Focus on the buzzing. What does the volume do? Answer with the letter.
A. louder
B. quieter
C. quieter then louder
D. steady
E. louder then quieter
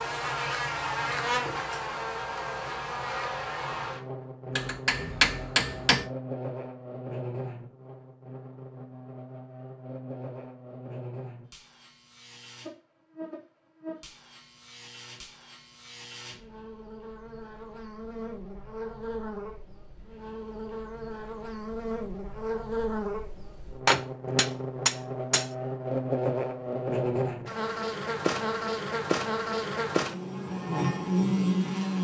C.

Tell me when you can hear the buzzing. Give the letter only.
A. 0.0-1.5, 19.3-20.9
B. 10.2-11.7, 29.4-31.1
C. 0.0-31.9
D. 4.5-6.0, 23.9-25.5
C.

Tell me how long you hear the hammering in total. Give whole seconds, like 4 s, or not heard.
3 s.